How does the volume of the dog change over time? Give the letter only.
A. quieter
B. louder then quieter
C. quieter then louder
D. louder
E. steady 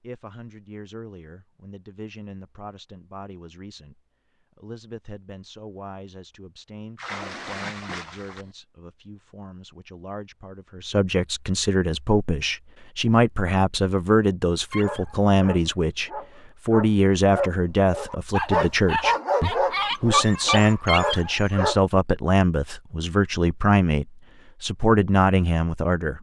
D.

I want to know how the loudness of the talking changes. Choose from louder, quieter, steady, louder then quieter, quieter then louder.
louder.